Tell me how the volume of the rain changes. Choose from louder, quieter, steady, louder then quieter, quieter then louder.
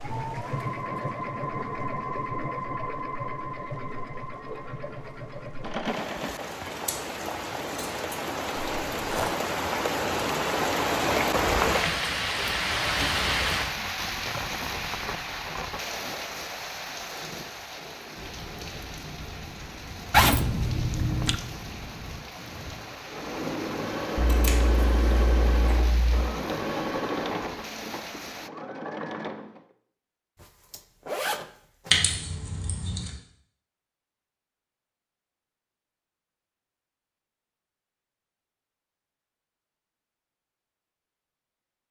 louder then quieter.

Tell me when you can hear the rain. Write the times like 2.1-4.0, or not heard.
0.0-28.5.